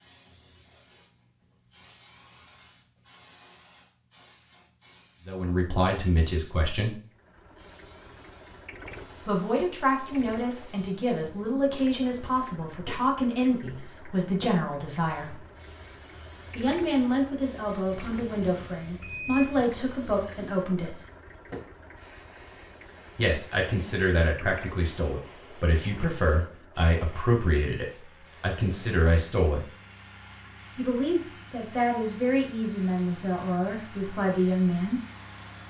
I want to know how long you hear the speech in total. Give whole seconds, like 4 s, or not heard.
23 s.